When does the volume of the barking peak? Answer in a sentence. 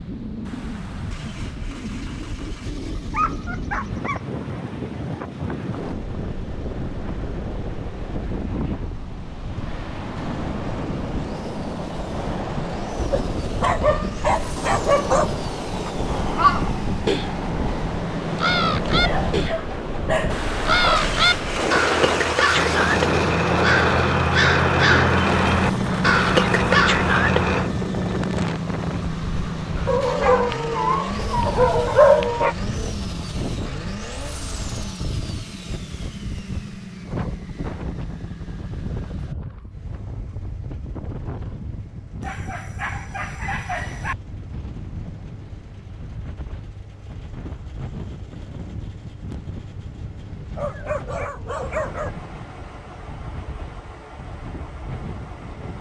The volume of the barking peaks at 32 seconds.